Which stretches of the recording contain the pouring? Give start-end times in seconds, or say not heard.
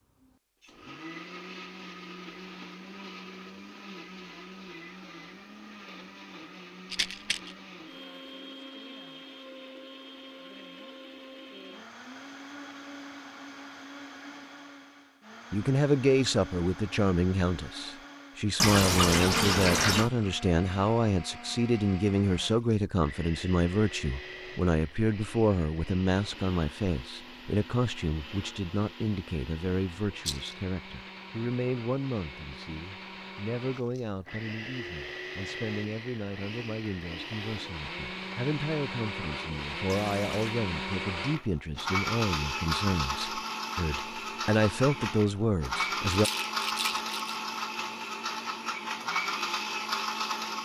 18.6-20.1, 39.9-40.5.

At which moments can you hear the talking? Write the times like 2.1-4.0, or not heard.
15.5-46.3.